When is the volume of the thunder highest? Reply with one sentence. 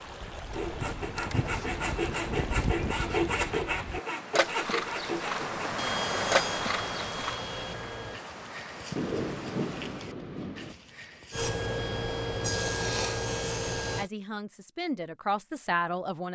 The volume of the thunder peaks at 9 seconds.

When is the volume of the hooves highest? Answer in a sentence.
The loudest moment of the hooves is at 6 seconds.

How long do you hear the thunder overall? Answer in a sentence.
The thunder can be heard for 2 seconds in total.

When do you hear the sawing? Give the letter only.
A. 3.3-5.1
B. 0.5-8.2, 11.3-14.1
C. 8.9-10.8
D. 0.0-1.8
B.